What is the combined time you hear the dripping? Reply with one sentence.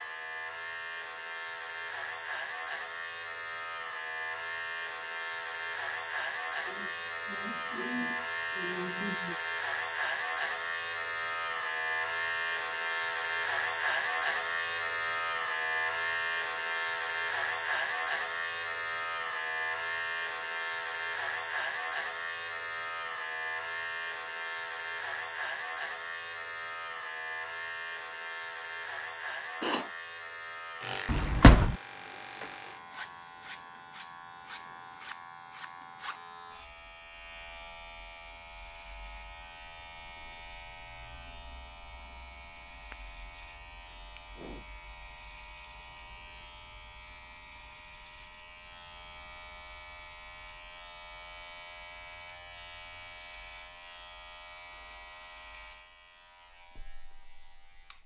The dripping can't be heard in this clip.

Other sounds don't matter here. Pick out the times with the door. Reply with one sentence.
You can hear the door from 31.1 to 31.8 s.